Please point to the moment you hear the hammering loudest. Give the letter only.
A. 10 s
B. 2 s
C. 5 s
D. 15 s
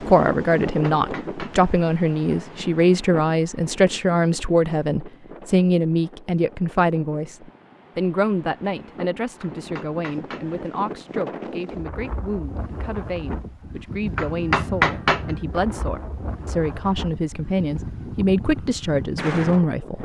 D.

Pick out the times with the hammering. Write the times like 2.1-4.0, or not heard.
0.7-1.7, 9.4-10.6, 14.2-15.4.